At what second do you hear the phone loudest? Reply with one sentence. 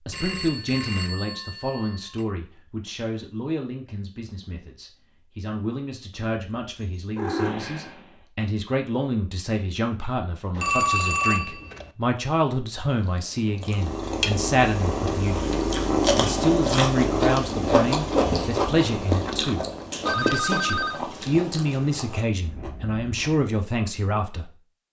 The loudest moment of the phone is at 11 seconds.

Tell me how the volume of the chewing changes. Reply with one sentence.
The volume of the chewing goes up, then down.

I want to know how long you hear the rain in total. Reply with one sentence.
The rain can't be heard in this clip.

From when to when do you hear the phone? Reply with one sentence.
You can hear the phone from 0.1 to 2.2 s, from 10.6 to 11.9 s and from 20.1 to 21.0 s.